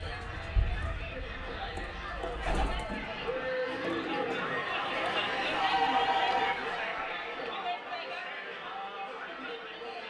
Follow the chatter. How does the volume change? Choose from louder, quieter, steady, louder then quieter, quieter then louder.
louder then quieter.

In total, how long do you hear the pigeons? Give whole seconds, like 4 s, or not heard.
6 s.